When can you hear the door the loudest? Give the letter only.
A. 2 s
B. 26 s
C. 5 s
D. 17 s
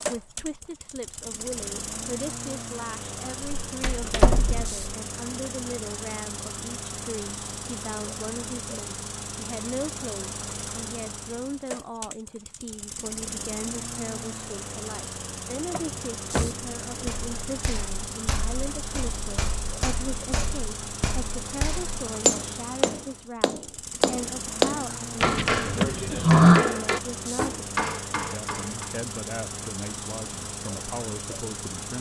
B.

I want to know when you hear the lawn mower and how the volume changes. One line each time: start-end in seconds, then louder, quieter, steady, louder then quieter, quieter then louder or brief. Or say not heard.
0.0-31.9 steady.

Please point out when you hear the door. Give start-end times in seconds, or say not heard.
3.6-4.8, 15.7-17.1, 25.2-26.6.